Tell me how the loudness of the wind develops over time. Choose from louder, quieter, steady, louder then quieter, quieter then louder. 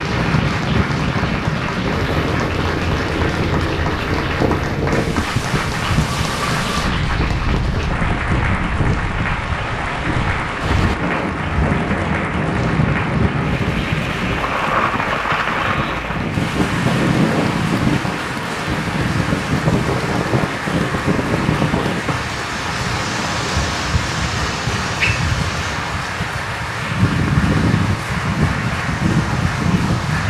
steady.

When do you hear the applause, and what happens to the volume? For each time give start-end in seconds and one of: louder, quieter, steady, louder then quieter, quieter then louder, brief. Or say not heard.
0.0-30.2 steady.